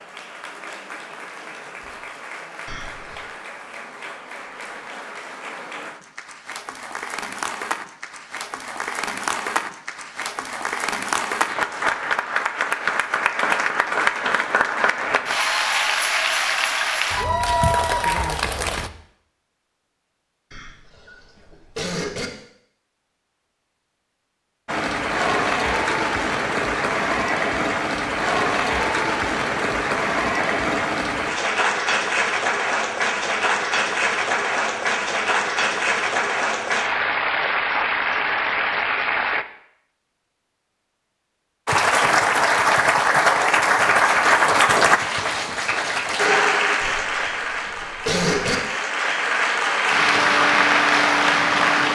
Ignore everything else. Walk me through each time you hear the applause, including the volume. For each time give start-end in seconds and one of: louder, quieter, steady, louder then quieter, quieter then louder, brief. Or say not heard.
0.0-18.9 louder
24.6-39.5 steady
41.6-51.9 quieter then louder.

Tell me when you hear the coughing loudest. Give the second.
48 s.